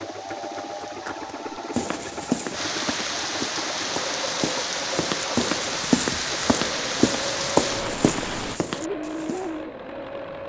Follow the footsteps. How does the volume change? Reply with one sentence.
The volume of the footsteps goes down, then up.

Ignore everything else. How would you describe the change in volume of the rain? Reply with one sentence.
The loudness of the rain goes up.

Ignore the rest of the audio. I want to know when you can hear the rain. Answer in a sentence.
The rain can be heard from 0.0 to 8.6 s.